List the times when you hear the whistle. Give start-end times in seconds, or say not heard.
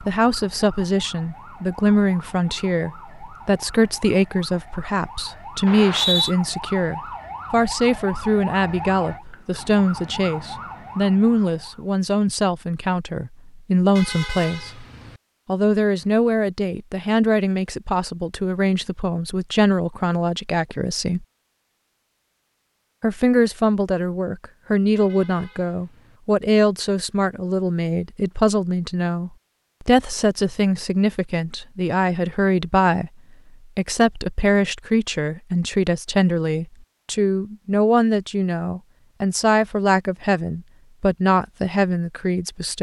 5.7-6.3.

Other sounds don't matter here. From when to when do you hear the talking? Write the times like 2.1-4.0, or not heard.
0.0-14.8, 15.4-21.2, 23.0-33.1, 33.8-42.7.